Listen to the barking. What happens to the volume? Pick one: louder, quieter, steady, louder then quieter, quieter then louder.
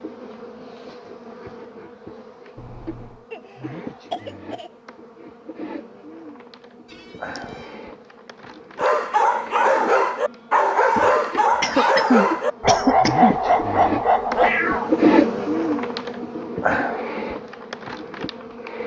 steady.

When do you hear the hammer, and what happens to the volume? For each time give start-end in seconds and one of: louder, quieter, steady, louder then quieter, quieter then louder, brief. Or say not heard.
not heard.